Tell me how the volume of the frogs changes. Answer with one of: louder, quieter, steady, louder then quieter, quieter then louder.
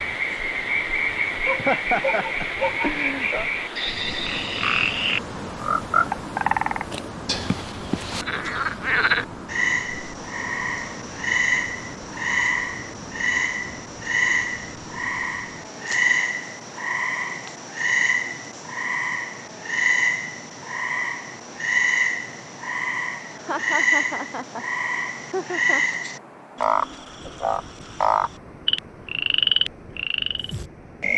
steady.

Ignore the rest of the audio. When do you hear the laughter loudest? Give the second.
2 s.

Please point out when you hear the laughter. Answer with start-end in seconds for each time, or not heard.
1.4-3.5, 23.4-25.9.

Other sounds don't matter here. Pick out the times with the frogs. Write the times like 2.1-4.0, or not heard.
0.0-31.1.